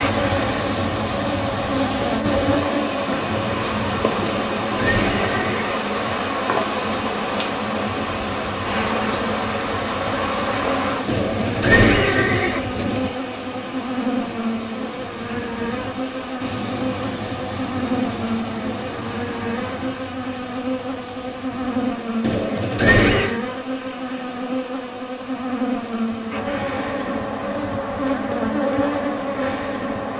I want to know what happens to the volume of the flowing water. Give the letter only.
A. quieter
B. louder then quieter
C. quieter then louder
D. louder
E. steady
A.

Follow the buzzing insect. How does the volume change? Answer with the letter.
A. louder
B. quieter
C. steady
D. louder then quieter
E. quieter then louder
C.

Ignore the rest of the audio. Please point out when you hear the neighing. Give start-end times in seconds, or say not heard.
4.2-6.2, 11.1-13.1, 22.2-23.4.